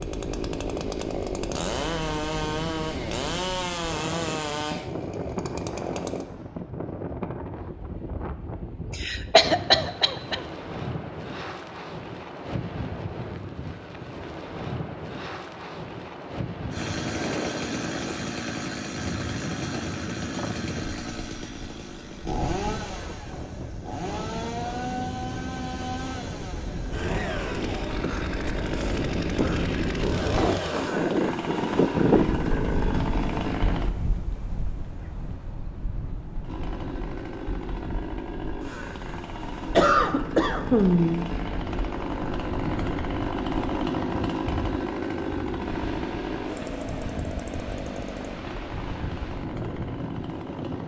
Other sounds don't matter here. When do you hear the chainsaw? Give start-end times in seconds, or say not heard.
0.0-6.2, 16.7-33.9, 36.4-50.8.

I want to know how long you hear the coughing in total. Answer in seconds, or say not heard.
5 s.